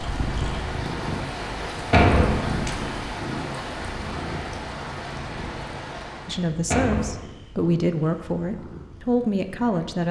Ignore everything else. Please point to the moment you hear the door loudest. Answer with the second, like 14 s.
2 s.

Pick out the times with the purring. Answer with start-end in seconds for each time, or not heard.
0.0-10.0.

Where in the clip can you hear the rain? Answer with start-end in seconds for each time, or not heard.
0.0-6.6.